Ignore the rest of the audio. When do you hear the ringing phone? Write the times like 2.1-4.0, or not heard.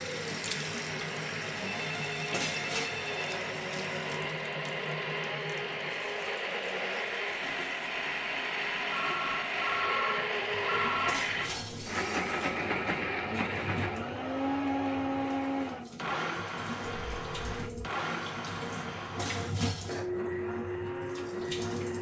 1.6-3.4, 8.9-11.2, 16.9-17.9.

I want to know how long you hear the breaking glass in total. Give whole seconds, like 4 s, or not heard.
3 s.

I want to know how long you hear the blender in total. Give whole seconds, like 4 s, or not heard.
22 s.